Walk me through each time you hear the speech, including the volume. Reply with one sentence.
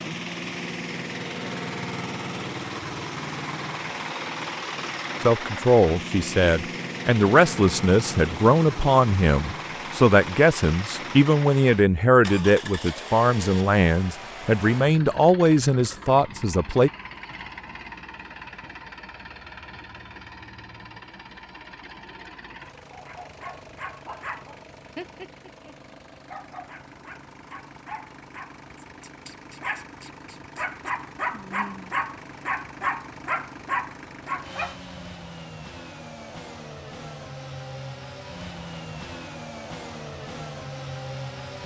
The speech can be heard from 5.2 to 16.9 s, at a steady volume.